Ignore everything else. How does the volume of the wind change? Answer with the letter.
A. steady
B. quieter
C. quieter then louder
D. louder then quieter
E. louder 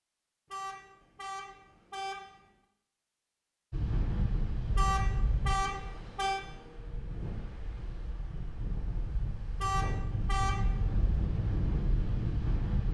C.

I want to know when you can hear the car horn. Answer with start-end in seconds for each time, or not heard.
0.5-2.5, 4.8-6.4, 9.6-10.8.